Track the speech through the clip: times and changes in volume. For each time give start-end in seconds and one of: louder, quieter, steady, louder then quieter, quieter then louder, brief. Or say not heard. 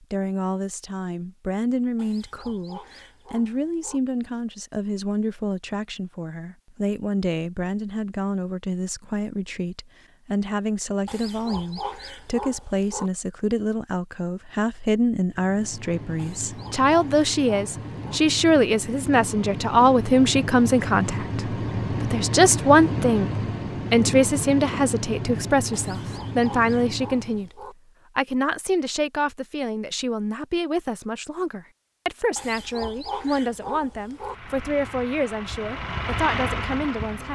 0.0-27.5 louder
28.1-37.3 steady.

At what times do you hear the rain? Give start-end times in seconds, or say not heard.
not heard.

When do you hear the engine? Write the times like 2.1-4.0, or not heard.
15.3-27.5, 34.1-37.3.